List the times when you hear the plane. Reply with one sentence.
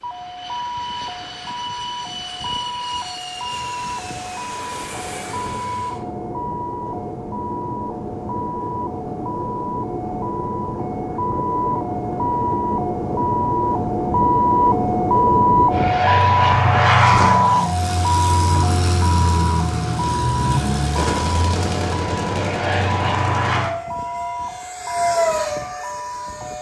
You can hear the plane from 0.0 to 26.5 s.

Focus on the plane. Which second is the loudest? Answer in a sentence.
The volume of the plane peaks at 17 seconds.